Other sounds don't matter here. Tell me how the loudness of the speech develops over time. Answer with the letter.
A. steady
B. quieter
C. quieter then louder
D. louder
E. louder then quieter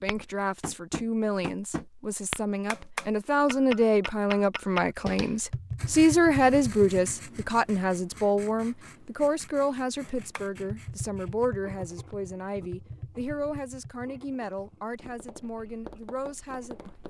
E.